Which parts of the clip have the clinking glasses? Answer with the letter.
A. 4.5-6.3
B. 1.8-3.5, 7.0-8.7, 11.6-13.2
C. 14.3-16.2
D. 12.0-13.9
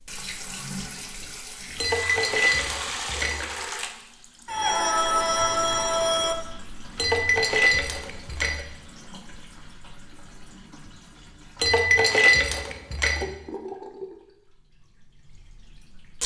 B.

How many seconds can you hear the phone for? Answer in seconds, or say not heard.
2 s.